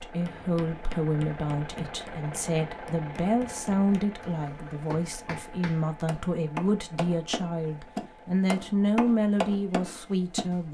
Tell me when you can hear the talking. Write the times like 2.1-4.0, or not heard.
0.0-10.6.